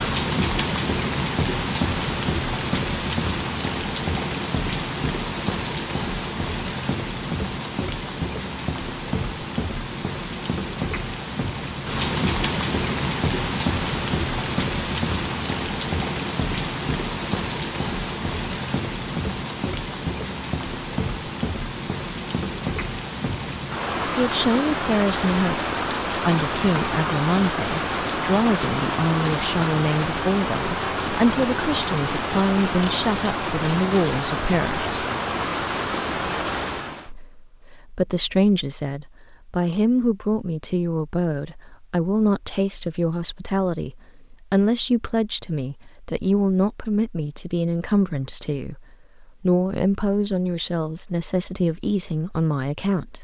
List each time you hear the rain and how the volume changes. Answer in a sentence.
The rain can be heard from 0.0 to 37.1 s, at a steady volume.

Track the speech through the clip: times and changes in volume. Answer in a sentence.
You can hear the speech from 24.1 to 35.0 s, at a steady volume; and from 37.0 to 53.1 s, at a steady volume.